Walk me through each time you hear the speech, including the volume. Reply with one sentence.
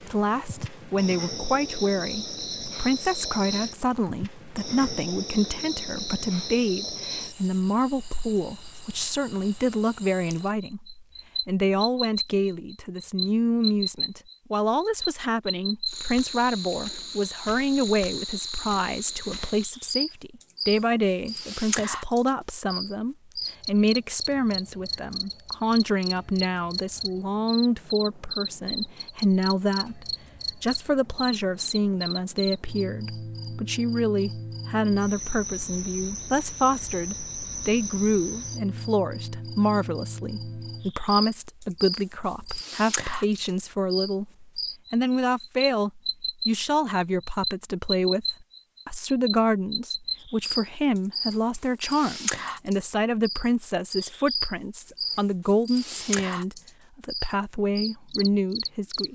You can hear the speech from 0.1 to 44.3 s, at a steady volume; and from 44.9 to 59.1 s, at a steady volume.